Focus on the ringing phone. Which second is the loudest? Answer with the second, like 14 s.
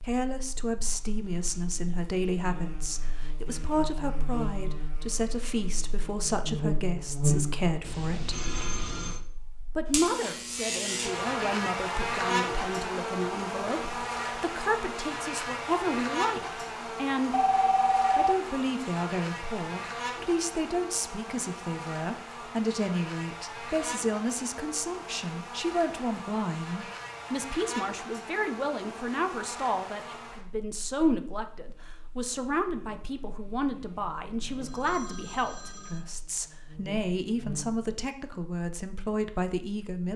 18 s.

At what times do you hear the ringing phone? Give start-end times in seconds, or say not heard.
7.8-9.2, 17.4-18.4, 34.4-36.0.